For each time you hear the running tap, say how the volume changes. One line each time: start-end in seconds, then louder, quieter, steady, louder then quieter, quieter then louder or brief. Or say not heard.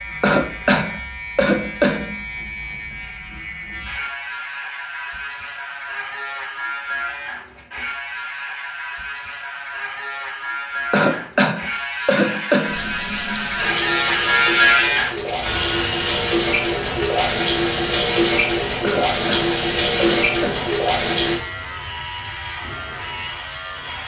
12.7-21.4 louder.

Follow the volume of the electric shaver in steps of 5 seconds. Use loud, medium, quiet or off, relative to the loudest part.
medium, medium, loud, medium, medium.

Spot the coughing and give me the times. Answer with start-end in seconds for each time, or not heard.
0.2-2.1, 10.9-12.8, 18.8-20.7.